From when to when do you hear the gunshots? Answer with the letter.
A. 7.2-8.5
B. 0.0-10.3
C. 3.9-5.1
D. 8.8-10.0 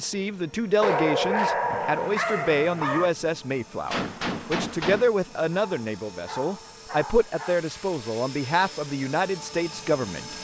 C.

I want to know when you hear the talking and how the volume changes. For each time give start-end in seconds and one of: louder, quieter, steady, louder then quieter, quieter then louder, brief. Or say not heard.
0.0-10.3 steady.